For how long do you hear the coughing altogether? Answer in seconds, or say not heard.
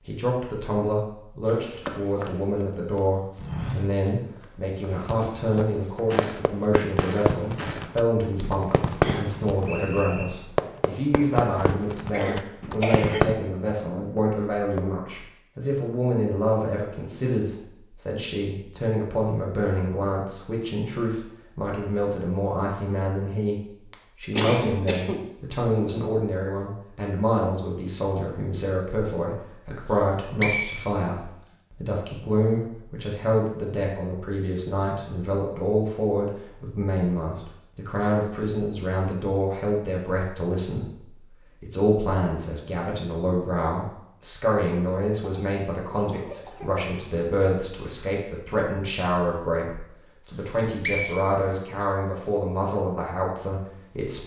4 s.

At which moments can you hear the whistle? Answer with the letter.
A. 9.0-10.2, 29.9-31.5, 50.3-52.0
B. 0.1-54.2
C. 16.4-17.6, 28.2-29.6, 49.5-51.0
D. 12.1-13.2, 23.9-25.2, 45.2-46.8
A.